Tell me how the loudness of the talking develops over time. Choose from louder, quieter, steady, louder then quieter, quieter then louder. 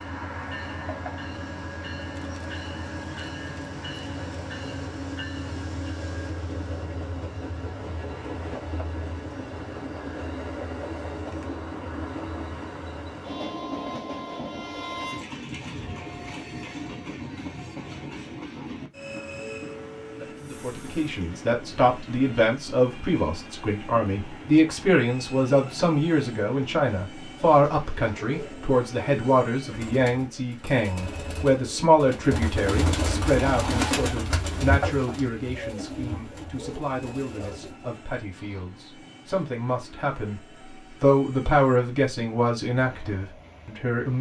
quieter then louder.